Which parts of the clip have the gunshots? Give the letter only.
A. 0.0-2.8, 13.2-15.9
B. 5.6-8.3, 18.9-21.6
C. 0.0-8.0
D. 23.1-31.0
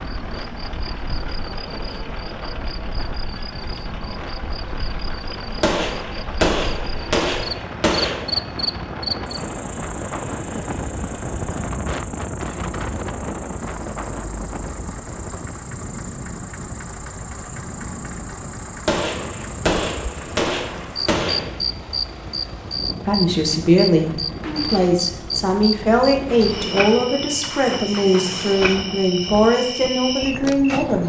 B.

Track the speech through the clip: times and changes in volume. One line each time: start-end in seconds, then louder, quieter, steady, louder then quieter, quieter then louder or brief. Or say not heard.
23.1-31.0 steady.